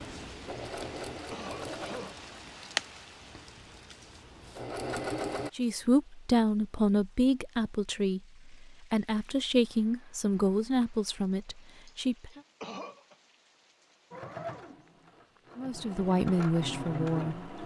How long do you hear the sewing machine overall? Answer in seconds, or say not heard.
9 s.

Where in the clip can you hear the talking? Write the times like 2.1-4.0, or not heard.
5.5-12.4, 15.6-17.5.